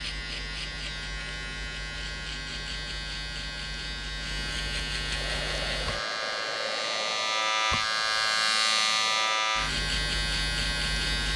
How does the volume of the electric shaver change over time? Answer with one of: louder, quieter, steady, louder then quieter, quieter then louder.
louder.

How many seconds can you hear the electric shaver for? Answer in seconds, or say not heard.
11 s.